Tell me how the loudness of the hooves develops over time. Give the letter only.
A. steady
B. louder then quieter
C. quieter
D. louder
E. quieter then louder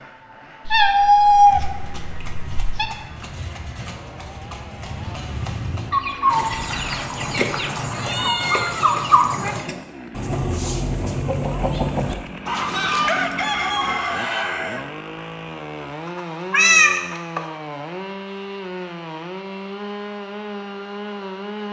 D.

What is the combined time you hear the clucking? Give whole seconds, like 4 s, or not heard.
9 s.